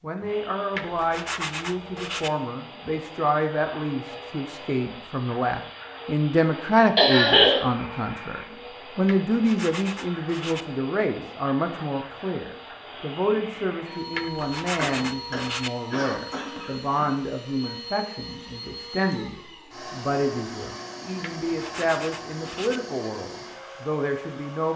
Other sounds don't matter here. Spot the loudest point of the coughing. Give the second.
7 s.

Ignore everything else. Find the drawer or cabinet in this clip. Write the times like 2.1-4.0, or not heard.
not heard.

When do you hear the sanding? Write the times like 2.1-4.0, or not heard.
0.7-2.3, 9.1-10.7, 14.1-15.7, 21.2-22.8.